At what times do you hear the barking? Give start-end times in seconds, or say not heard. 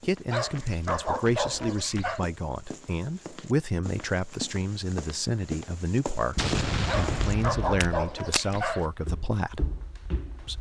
0.3-2.2, 6.8-8.9.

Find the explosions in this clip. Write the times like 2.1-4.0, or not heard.
6.3-7.8.